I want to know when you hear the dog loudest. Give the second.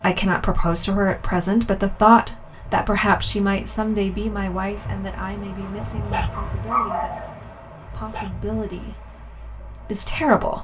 7 s.